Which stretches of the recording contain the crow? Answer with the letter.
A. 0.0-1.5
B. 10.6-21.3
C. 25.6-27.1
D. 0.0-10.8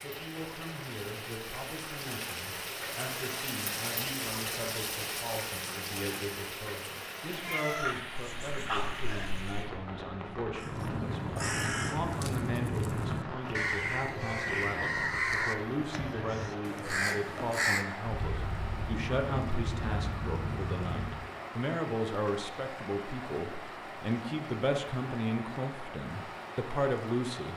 B.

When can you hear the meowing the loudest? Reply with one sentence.
The loudest moment of the meowing is at 8 seconds.